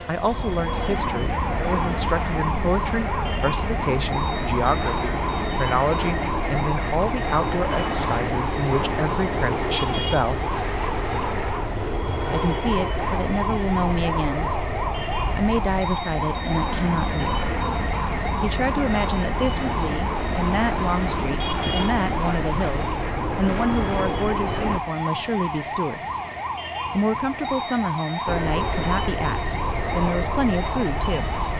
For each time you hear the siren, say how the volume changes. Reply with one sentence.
You can hear the siren from 0.0 to 31.5 s, at a steady volume.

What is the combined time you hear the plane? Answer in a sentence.
You can hear the plane for 28 seconds altogether.